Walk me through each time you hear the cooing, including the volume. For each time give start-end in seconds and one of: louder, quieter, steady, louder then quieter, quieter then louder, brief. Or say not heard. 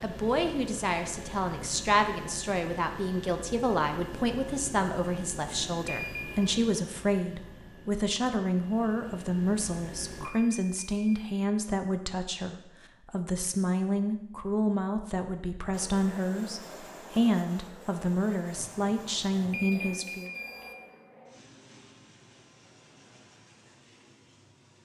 not heard.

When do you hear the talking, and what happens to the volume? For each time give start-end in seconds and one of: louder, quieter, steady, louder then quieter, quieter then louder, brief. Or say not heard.
0.0-20.3 steady.